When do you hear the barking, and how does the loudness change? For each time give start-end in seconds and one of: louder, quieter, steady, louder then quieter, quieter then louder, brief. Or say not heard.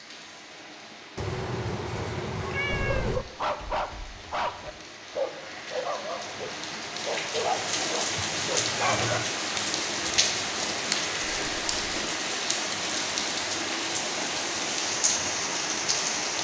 2.6-9.2 quieter.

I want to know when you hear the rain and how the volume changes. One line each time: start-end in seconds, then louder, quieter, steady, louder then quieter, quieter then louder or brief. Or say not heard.
0.0-16.4 louder.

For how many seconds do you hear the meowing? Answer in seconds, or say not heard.
4 s.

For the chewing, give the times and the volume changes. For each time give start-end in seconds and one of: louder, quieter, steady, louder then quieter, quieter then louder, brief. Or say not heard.
not heard.